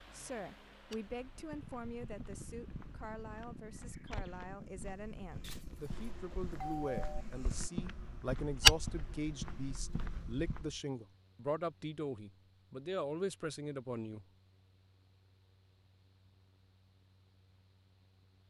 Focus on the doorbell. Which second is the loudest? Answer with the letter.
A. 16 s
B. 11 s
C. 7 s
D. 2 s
C.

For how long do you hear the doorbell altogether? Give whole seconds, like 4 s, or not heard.
2 s.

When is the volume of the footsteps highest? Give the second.
9 s.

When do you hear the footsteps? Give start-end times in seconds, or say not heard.
0.9-10.8.